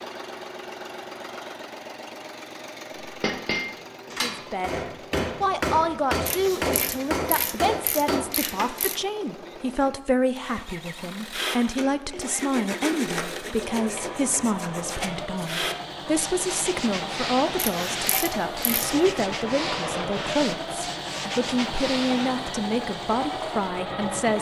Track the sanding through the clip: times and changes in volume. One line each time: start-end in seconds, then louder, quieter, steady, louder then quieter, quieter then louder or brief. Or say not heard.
11.3-22.4 steady.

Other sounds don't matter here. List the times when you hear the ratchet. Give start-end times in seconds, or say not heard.
6.2-9.0, 17.6-19.0.